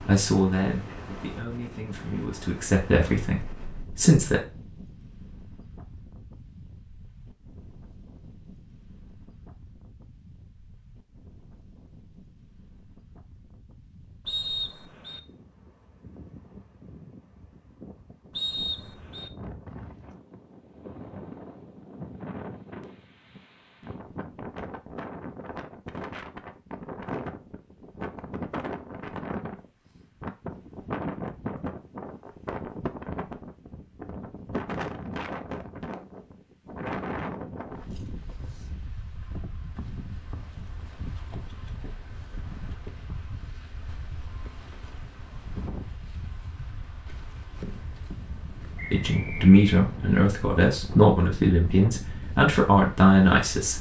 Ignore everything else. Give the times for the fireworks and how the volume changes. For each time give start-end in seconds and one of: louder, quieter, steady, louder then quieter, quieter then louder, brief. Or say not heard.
not heard.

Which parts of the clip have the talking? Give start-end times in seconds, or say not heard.
0.0-4.4, 48.9-53.7.